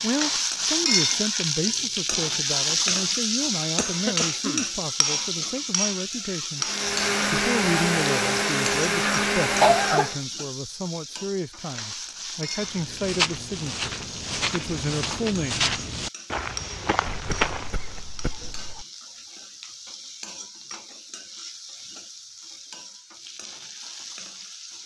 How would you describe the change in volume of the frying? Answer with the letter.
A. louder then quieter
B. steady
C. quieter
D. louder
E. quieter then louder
C.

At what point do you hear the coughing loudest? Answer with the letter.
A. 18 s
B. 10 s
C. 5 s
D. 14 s
B.